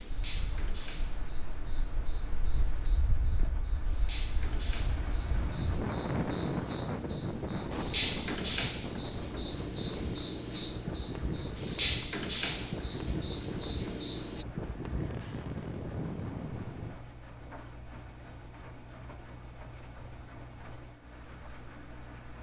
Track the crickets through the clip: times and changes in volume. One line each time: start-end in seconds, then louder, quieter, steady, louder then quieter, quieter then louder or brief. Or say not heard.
0.0-14.4 louder.